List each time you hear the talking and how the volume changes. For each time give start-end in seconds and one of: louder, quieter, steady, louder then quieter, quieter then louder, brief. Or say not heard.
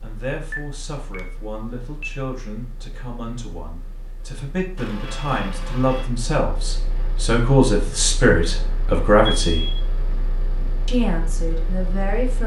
0.0-9.7 louder
10.8-12.4 brief.